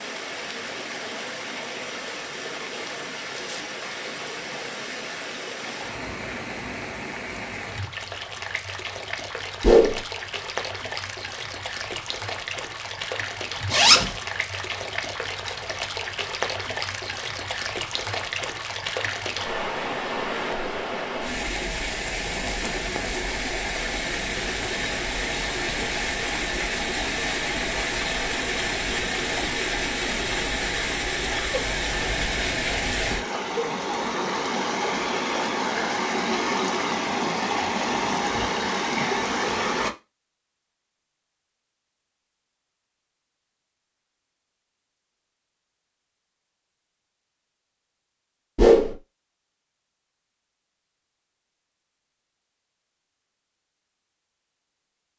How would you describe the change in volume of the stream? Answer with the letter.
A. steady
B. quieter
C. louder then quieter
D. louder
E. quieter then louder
D.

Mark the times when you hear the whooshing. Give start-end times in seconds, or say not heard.
9.6-10.0, 48.5-49.0.